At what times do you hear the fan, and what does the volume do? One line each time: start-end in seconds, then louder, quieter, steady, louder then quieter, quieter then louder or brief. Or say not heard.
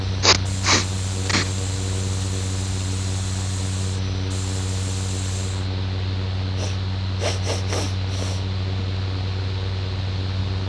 0.0-10.6 steady.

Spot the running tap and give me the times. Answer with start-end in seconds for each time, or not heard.
0.0-5.7.